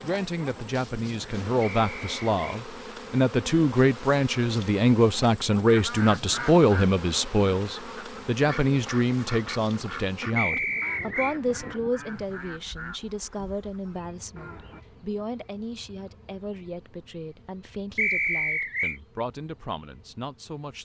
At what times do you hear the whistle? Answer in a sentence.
The whistle can be heard from 1.6 to 2.6 s, from 10.3 to 11.3 s and from 17.9 to 19.0 s.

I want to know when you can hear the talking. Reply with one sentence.
You can hear the talking from 0.0 to 20.8 s.